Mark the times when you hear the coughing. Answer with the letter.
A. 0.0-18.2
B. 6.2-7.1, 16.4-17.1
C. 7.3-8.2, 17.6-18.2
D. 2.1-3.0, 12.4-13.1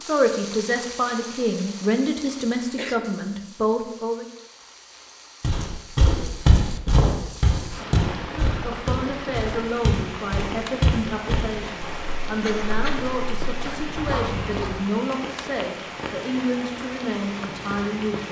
D.